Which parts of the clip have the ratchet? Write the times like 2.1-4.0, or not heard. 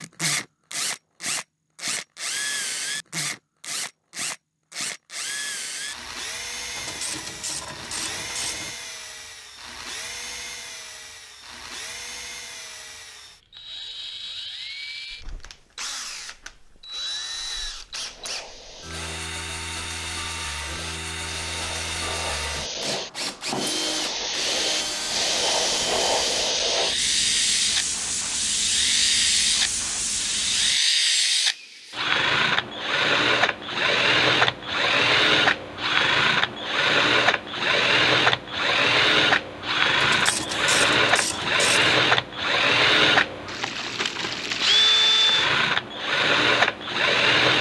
6.8-8.8, 40.0-42.0.